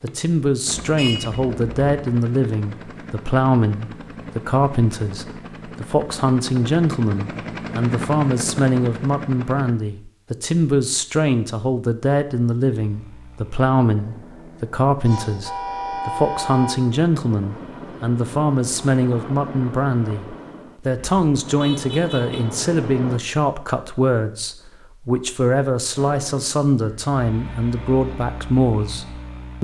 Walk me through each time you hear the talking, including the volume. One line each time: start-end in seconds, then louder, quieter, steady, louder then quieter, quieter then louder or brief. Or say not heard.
0.0-29.5 steady.